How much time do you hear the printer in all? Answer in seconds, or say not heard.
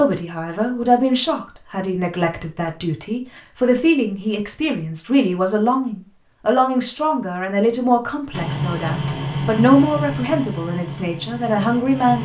4 s.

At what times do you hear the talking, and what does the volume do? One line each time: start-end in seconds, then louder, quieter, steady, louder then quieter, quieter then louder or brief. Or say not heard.
0.0-12.1 steady.